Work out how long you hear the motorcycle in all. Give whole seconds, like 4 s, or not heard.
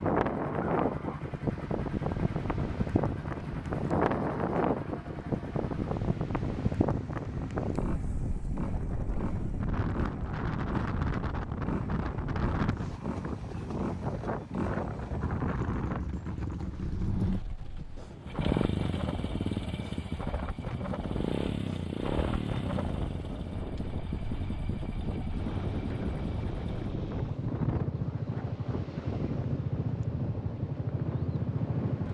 32 s.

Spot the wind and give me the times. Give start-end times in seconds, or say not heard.
0.0-32.0.